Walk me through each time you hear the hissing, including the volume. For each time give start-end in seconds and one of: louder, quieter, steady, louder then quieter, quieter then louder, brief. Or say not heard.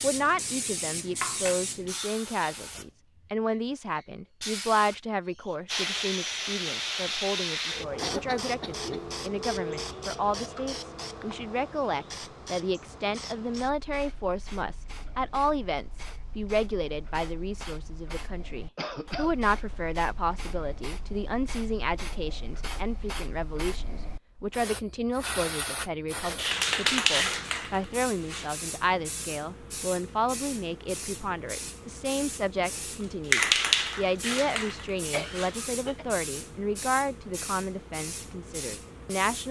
0.0-2.9 brief
4.0-39.4 quieter then louder.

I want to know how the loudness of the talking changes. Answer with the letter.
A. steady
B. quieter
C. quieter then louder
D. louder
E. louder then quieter
A.